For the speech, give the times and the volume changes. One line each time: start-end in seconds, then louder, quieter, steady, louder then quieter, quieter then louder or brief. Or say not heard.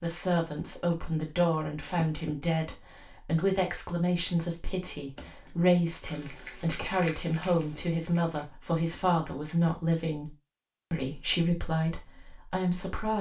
0.0-10.3 steady
10.9-13.1 brief.